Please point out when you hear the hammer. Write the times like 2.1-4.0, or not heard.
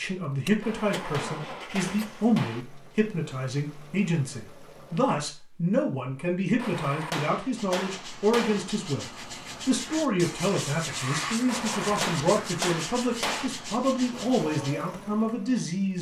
0.6-2.6, 6.5-8.6, 11.4-13.5.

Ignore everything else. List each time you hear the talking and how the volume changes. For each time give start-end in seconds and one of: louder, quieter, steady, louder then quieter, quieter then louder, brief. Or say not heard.
0.0-15.9 steady.